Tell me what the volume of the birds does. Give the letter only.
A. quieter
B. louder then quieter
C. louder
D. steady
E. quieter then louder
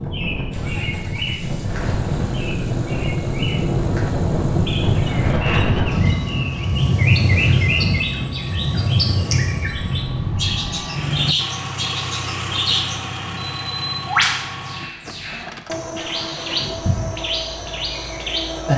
C.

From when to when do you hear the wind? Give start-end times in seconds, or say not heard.
0.0-10.9.